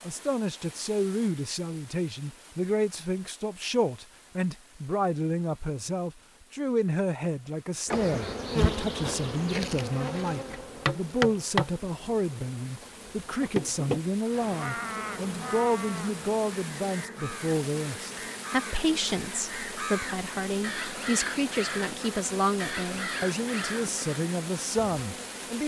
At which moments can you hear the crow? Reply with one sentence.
You can hear the crow from 14.2 to 25.0 s.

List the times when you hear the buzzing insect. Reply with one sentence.
The buzzing insect can be heard from 7.8 to 25.6 s.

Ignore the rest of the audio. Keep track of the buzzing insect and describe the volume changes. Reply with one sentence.
The volume of the buzzing insect goes down.